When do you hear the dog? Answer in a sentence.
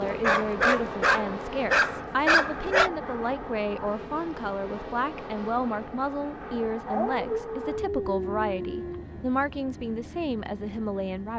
You can hear the dog from 0.1 to 2.9 s and from 6.8 to 9.1 s.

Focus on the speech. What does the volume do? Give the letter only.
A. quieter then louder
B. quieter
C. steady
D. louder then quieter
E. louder
C.